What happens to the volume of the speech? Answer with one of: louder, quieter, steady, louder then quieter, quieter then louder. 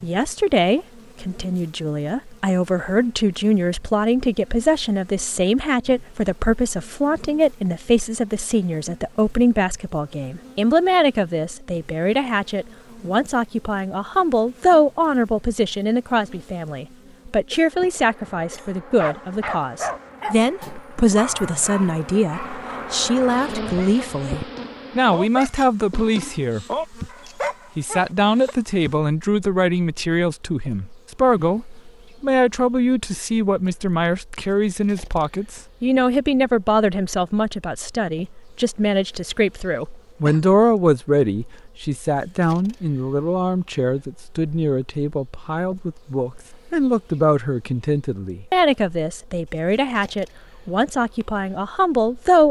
steady.